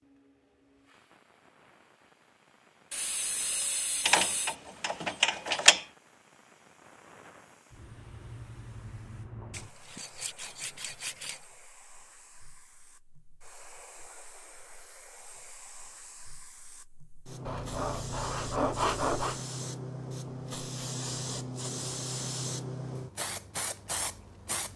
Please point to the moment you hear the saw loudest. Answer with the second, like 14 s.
19 s.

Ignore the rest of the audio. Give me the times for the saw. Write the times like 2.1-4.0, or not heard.
2.9-4.5, 9.5-11.4, 17.4-19.4.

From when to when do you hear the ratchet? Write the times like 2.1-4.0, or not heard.
4.0-5.8.